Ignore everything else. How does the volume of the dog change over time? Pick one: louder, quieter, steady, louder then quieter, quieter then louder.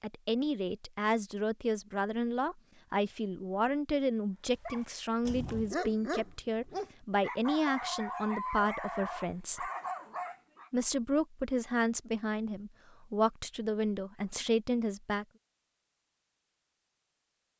steady.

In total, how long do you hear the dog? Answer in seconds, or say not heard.
6 s.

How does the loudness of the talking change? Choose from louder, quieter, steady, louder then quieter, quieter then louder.
steady.